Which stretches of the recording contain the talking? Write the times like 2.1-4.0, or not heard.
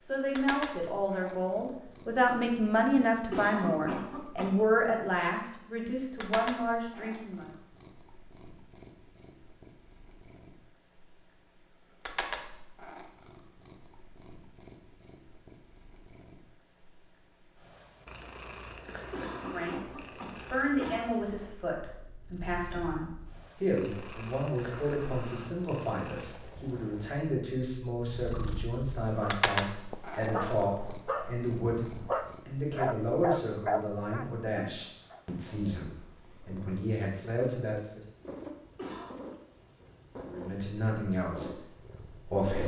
0.1-7.5, 19.4-38.0, 40.1-42.6.